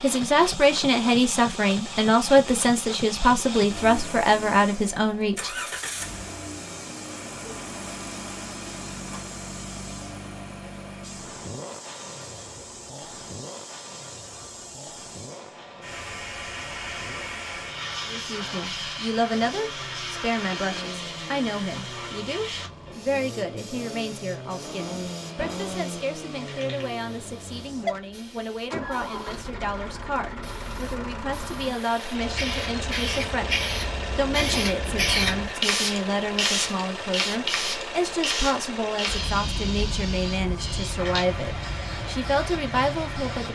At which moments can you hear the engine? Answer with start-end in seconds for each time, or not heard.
0.0-43.5.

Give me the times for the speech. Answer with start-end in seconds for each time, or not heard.
0.0-5.5, 18.1-43.5.